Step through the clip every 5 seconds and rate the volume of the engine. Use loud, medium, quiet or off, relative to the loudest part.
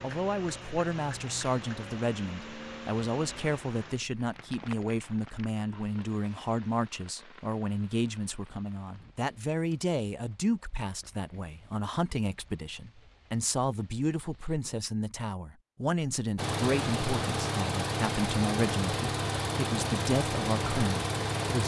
quiet, off, off, loud, loud.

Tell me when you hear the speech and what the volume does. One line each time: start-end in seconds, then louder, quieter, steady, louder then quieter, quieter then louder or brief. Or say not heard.
0.0-21.6 steady.